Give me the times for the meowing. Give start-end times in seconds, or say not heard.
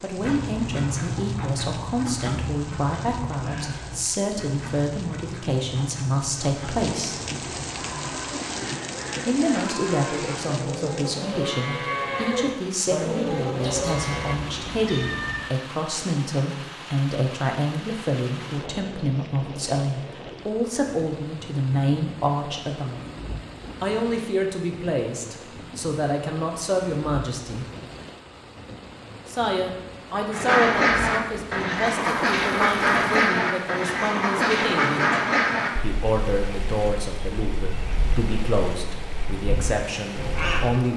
13.6-15.6.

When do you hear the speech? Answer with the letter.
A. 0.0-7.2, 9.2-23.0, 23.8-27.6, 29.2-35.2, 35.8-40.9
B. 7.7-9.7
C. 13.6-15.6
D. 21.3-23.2
A.